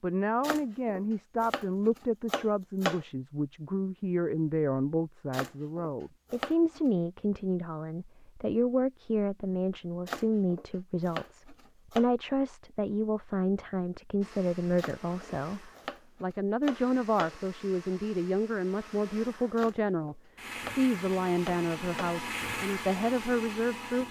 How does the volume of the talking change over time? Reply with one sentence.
The loudness of the talking stays about the same.